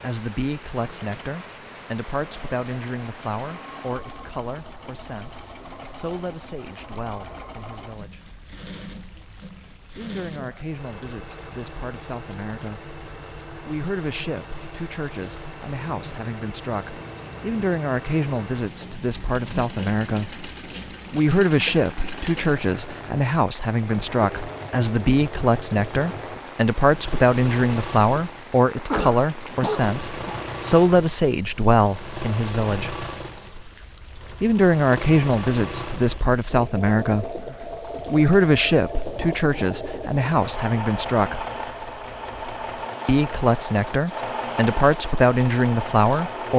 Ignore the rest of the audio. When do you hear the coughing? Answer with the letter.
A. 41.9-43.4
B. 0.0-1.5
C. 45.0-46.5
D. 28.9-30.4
D.